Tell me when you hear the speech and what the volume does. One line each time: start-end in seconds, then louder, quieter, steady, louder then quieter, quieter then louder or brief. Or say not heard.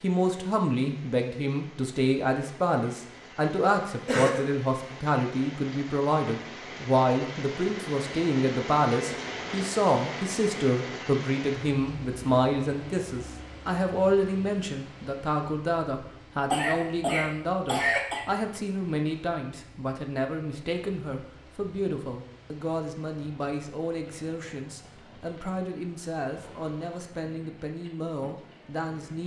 0.0-29.2 quieter.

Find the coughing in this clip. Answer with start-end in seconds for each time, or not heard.
4.0-4.5, 16.5-18.2.